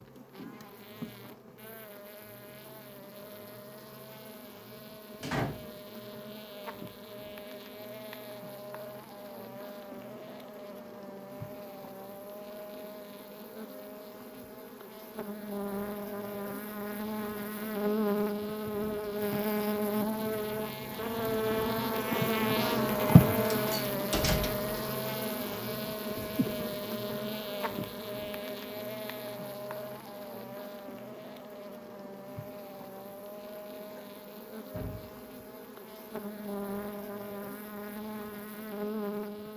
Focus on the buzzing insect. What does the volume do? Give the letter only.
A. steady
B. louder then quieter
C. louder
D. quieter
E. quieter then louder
B.